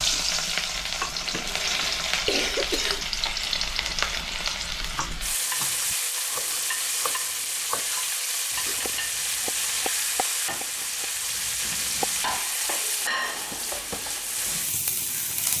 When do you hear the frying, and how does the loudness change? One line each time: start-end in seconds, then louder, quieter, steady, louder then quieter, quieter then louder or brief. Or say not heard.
0.0-15.5 steady.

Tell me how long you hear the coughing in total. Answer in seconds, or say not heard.
2 s.